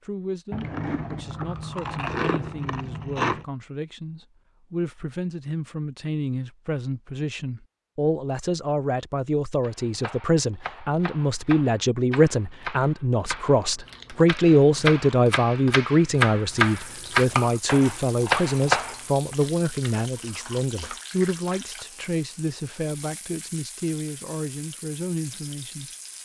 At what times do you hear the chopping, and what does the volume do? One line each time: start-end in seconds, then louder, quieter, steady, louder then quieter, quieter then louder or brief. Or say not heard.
9.6-19.4 louder.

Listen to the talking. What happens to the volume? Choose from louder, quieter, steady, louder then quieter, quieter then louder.
louder then quieter.